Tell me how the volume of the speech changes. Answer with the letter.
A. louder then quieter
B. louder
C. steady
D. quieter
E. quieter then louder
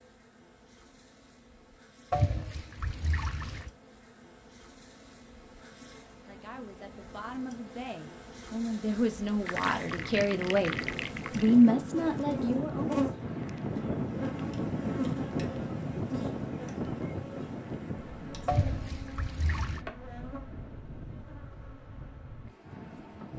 B.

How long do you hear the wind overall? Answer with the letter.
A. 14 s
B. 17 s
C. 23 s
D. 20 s
A.